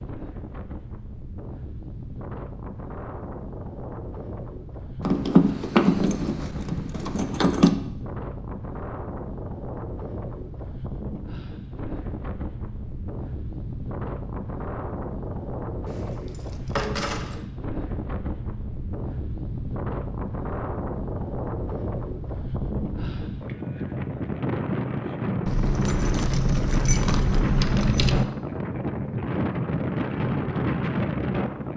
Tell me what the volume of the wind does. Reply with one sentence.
The volume of the wind goes up.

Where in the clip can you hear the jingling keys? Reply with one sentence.
You can hear the jingling keys from 5.0 to 7.8 s, from 15.8 to 17.4 s and from 25.4 to 28.2 s.